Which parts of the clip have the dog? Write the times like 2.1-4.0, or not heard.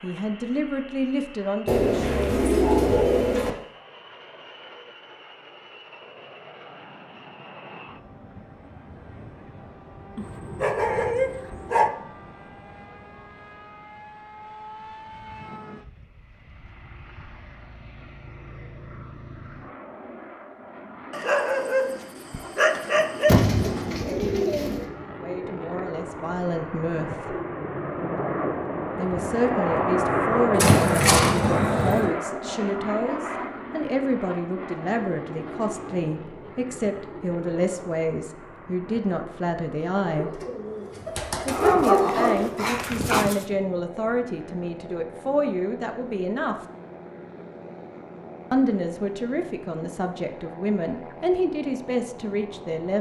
10.2-11.9, 21.1-23.9, 41.5-43.5.